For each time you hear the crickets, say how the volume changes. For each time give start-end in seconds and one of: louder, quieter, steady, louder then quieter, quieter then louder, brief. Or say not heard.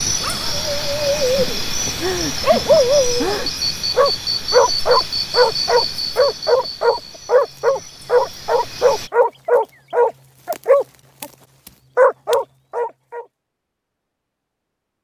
0.0-9.1 quieter.